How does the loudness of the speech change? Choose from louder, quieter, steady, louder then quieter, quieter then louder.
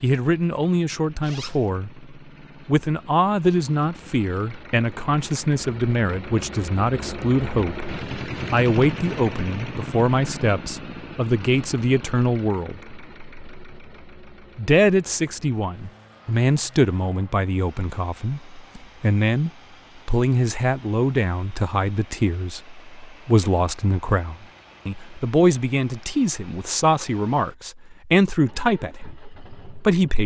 steady.